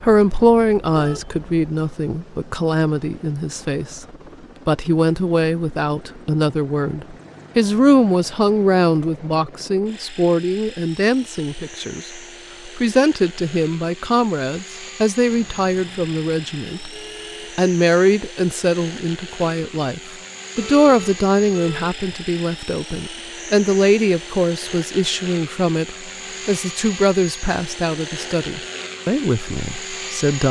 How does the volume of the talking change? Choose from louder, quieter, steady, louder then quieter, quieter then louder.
steady.